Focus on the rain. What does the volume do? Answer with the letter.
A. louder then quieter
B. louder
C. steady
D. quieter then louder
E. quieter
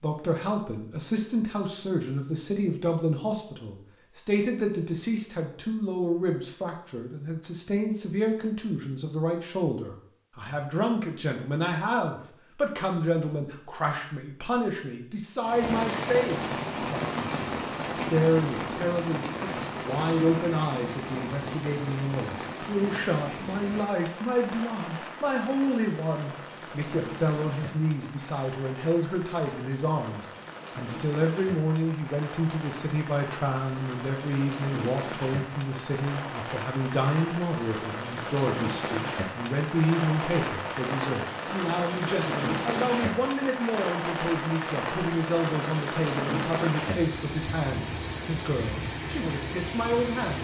D.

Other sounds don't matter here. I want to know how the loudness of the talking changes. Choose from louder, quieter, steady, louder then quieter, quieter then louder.
steady.